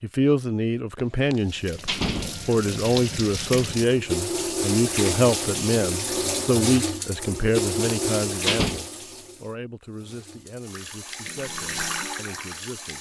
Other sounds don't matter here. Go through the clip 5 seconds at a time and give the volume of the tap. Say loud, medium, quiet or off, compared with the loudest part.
loud, loud, medium.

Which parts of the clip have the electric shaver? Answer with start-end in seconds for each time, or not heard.
not heard.